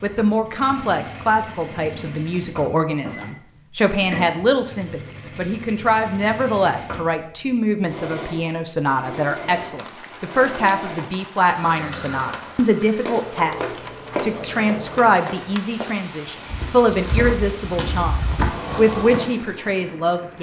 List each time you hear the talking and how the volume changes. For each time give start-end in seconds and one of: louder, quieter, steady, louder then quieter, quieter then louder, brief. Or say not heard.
0.0-20.3 steady.